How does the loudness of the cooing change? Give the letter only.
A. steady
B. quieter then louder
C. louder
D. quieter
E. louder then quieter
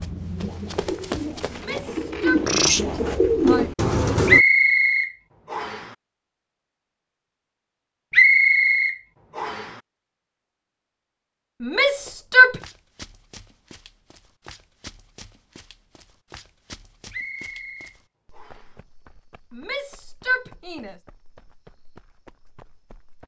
C.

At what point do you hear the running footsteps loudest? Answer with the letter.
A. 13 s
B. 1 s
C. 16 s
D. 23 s
B.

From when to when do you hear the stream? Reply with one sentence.
You can't hear the stream here.